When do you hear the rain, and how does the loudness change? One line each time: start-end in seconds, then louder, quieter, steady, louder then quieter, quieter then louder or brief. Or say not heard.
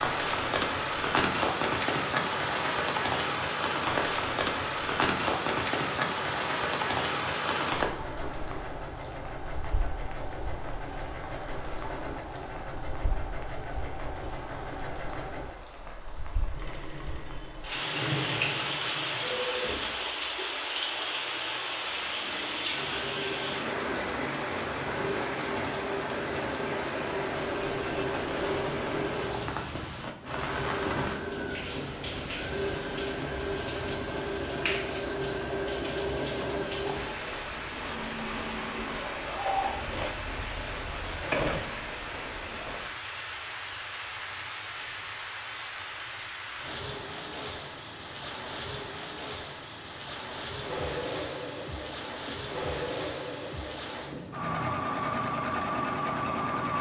0.0-56.7 quieter.